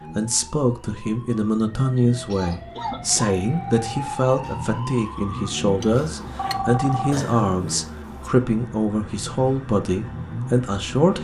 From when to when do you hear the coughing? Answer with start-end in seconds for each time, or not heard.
2.3-3.4, 7.1-8.3.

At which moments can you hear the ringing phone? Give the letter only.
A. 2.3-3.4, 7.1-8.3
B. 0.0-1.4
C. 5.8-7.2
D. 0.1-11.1
C.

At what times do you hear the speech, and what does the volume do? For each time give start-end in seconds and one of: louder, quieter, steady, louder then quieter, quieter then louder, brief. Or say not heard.
0.1-11.1 steady.